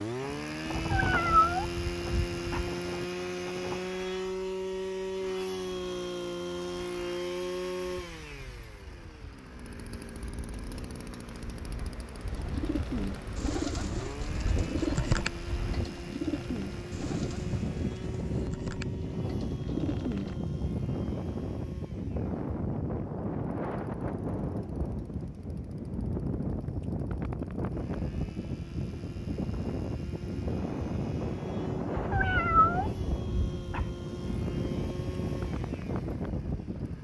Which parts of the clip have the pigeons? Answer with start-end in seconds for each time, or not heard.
12.3-20.4.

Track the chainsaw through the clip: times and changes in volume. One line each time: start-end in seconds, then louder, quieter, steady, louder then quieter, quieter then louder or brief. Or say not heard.
0.0-36.9 quieter then louder.